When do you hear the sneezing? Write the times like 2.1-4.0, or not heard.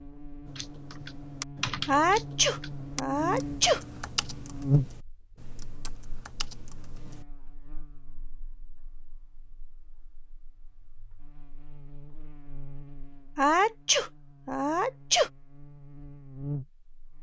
1.9-3.8, 13.3-15.3.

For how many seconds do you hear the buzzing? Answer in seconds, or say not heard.
17 s.